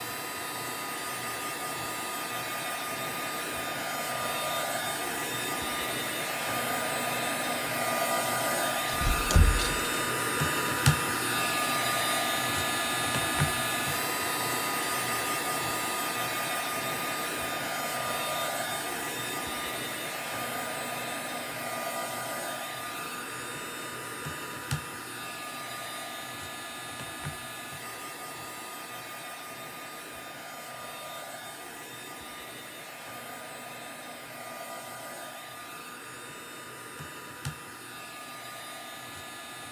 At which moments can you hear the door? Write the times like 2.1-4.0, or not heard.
8.8-9.8.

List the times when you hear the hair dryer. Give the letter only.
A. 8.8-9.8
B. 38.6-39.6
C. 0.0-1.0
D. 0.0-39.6
D.